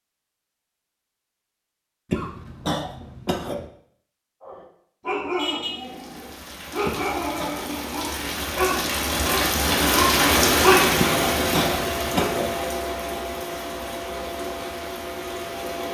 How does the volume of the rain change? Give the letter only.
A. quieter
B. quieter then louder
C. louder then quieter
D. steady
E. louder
C.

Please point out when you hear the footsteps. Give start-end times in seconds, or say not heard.
not heard.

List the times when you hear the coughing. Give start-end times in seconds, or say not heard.
2.1-3.6, 6.8-7.5, 10.9-12.6.